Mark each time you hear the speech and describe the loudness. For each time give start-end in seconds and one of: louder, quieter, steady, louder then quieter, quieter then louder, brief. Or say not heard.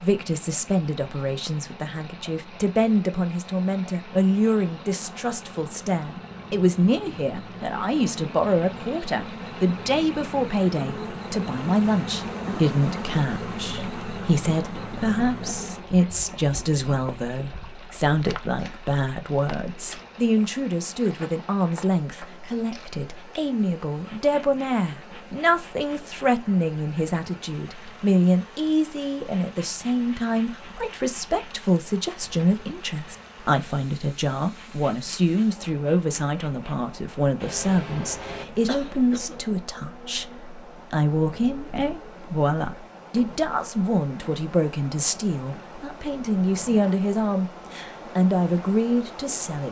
0.0-49.6 steady.